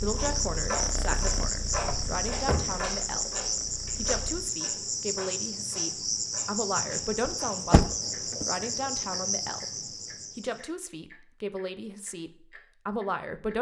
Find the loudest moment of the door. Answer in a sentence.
The volume of the door peaks at 8 seconds.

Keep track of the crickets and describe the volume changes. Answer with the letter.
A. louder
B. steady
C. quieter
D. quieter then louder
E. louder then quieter
B.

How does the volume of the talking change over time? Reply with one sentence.
The loudness of the talking stays about the same.